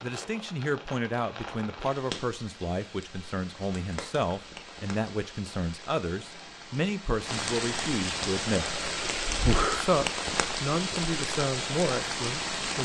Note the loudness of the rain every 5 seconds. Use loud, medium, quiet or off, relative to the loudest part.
medium, loud, loud.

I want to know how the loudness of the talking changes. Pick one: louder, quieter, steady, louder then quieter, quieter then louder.
steady.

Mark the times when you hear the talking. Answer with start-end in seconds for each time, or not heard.
0.0-8.8, 9.7-12.7.